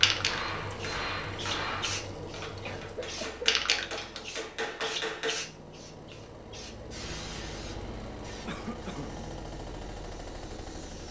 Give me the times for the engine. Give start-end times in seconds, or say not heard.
0.0-11.0.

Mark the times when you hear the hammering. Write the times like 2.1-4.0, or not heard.
0.1-5.5.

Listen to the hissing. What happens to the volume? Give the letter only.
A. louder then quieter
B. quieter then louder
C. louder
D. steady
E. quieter
A.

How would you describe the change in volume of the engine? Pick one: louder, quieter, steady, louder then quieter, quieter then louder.
quieter then louder.